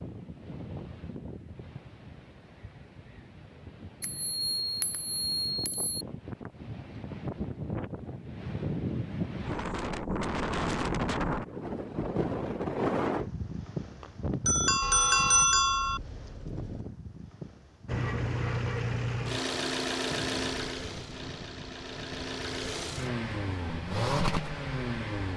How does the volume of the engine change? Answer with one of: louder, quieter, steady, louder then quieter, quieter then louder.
quieter then louder.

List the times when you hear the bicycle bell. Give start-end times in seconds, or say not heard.
4.0-6.0, 14.0-16.0.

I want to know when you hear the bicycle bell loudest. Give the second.
15 s.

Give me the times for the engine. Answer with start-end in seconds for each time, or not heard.
17.9-25.3.